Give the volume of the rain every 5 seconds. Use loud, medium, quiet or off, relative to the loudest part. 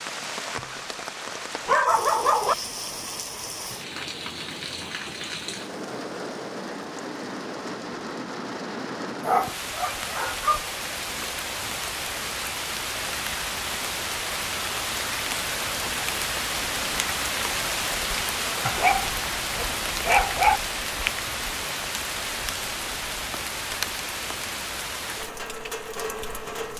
medium, medium, loud, loud, loud, medium.